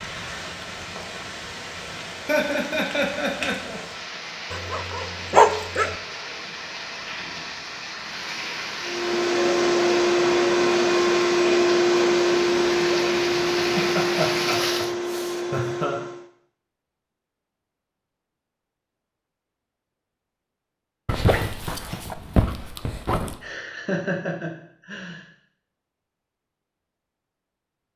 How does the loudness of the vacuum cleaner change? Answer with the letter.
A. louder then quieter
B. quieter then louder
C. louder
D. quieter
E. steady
D.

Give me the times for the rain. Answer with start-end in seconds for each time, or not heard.
0.0-14.9.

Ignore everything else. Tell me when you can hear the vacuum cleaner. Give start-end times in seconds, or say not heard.
8.8-16.2.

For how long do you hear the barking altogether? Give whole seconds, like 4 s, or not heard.
4 s.